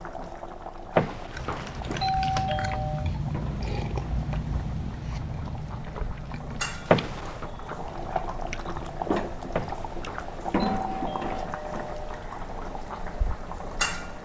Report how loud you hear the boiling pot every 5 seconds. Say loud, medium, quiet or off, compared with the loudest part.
medium, loud, loud.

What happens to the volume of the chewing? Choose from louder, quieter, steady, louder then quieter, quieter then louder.
quieter.